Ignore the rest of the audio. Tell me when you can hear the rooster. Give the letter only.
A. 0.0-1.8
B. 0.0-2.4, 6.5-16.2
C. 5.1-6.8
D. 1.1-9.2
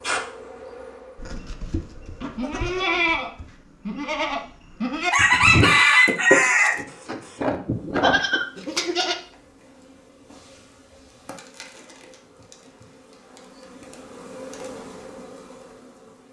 C.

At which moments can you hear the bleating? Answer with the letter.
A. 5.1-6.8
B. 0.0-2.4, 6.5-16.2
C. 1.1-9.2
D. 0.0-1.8
C.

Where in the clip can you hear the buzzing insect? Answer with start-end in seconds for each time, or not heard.
0.0-2.4, 6.5-16.2.